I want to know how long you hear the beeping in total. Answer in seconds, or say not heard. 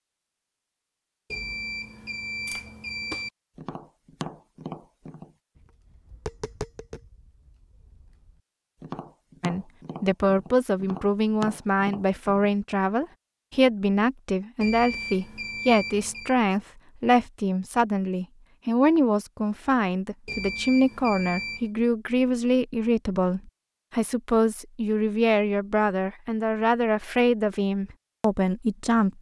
5 s.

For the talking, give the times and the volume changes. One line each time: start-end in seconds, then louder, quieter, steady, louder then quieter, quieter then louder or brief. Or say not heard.
9.4-29.1 steady.